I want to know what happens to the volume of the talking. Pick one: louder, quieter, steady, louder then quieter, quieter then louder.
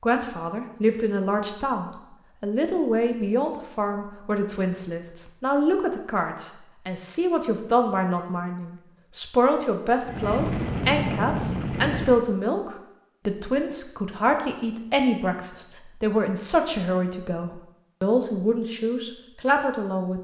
steady.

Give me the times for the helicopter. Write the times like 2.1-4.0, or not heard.
10.1-12.2.